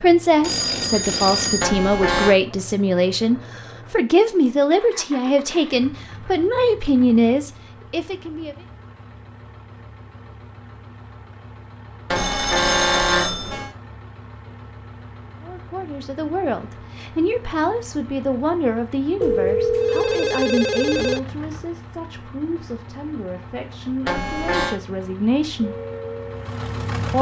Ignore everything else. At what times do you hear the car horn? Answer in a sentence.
The car horn can be heard from 1.6 to 2.4 s, from 12.1 to 13.7 s and from 24.1 to 24.8 s.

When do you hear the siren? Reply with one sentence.
You can hear the siren from 25.6 to 27.1 s.